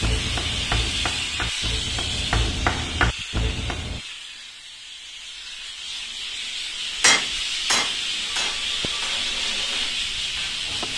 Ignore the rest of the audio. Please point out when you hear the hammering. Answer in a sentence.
The hammering can be heard from 0.0 to 4.0 s and from 7.0 to 10.9 s.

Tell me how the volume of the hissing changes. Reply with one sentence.
The volume of the hissing goes down, then up.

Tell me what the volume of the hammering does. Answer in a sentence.
The loudness of the hammering goes up, then down.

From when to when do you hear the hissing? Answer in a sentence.
The hissing can be heard from 0.0 to 10.9 s.